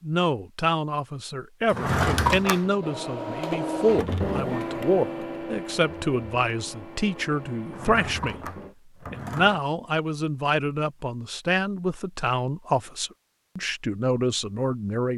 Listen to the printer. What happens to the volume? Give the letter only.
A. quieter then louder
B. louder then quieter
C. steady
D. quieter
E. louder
D.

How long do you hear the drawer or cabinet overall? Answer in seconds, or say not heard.
3 s.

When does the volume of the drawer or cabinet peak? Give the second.
2 s.